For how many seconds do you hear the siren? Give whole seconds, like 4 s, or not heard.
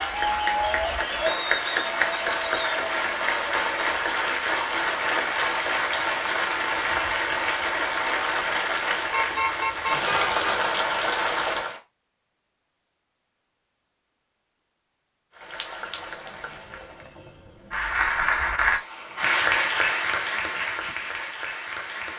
not heard.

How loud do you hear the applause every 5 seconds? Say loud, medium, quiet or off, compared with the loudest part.
loud, loud, loud, loud, medium.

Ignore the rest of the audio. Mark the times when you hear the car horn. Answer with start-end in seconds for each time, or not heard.
9.1-10.4.